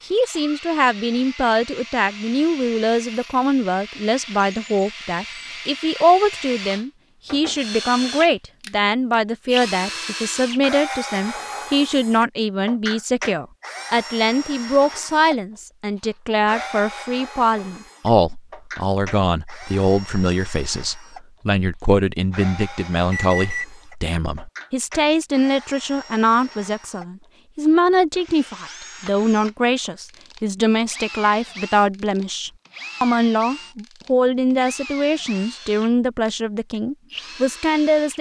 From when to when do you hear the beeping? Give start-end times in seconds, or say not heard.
23.1-23.6.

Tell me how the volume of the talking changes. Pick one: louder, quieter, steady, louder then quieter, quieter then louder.
steady.